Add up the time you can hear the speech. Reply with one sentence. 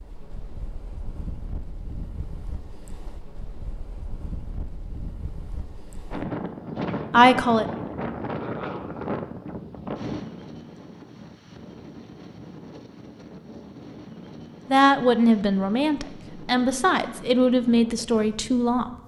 You can hear the speech for 5 seconds altogether.